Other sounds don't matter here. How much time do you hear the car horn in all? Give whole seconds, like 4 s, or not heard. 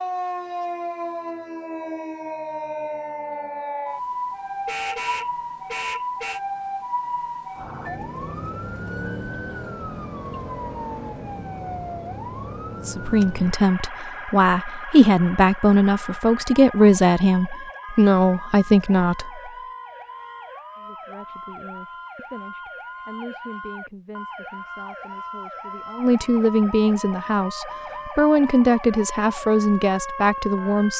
2 s.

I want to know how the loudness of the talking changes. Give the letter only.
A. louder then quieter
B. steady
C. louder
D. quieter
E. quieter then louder
E.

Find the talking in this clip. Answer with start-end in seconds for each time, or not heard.
12.8-19.4, 20.8-30.9.